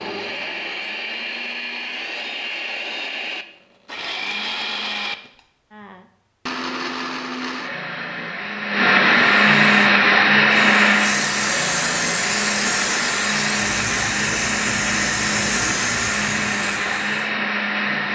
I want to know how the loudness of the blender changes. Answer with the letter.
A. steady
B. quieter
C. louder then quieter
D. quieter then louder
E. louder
C.